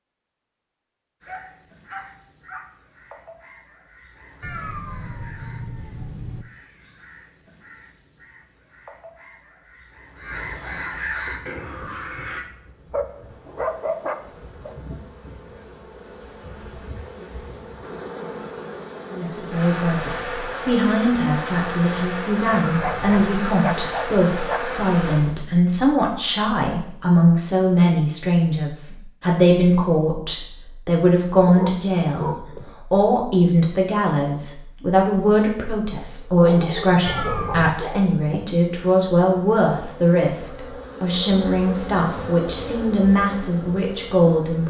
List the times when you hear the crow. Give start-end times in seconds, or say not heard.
1.2-12.4.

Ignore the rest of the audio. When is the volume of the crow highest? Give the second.
11 s.